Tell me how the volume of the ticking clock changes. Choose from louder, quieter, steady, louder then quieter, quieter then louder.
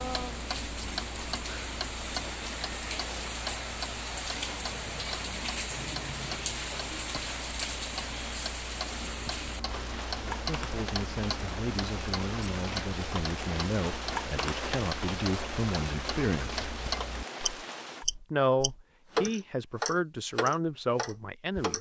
louder.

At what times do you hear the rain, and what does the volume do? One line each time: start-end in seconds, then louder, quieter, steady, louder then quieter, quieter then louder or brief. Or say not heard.
0.0-18.1 steady.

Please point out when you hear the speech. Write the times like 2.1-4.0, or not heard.
10.2-16.7, 18.3-21.7.